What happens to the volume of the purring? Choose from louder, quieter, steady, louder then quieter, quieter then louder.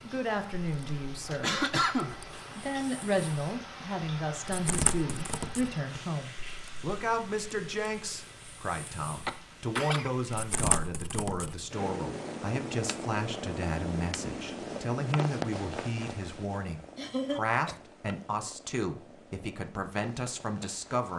louder then quieter.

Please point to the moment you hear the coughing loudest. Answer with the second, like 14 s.
2 s.